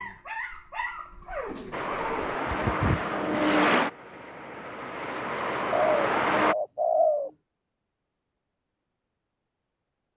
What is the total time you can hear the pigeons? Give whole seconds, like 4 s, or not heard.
3 s.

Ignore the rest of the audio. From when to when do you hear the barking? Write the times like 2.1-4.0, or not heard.
0.0-2.2.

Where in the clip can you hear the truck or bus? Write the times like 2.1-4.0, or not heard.
1.7-6.5.